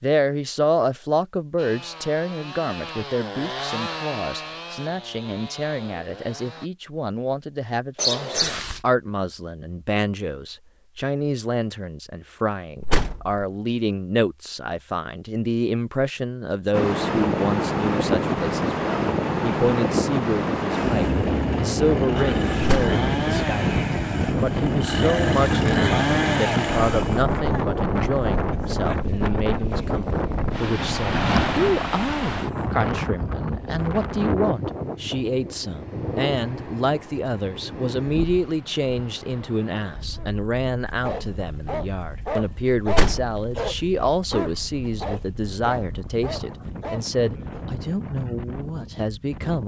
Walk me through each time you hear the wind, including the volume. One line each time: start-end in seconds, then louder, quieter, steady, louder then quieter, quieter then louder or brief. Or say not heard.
16.7-49.6 quieter.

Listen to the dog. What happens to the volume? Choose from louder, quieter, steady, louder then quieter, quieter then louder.
louder then quieter.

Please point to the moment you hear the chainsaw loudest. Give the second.
26 s.